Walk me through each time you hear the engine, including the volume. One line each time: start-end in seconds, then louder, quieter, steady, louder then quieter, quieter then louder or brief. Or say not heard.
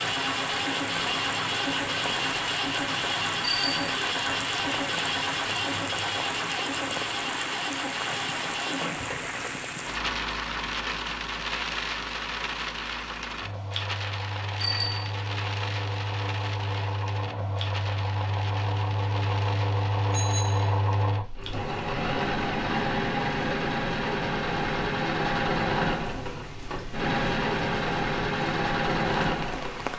0.0-29.9 quieter then louder.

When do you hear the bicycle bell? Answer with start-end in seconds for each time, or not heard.
3.4-3.9, 14.6-15.1, 20.1-20.7.